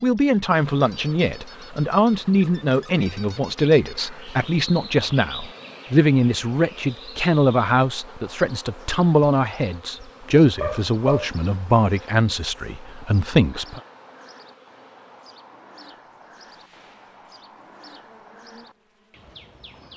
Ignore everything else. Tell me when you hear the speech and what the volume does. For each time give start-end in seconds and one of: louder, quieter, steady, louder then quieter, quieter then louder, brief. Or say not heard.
0.0-13.8 steady.